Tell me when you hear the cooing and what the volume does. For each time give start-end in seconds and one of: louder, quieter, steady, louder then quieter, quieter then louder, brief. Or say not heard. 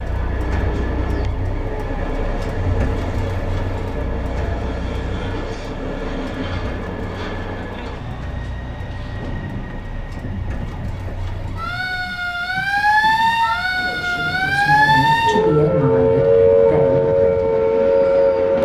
not heard.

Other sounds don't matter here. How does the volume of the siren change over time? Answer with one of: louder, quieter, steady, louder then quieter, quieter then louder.
quieter then louder.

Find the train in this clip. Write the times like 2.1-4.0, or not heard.
0.0-18.5.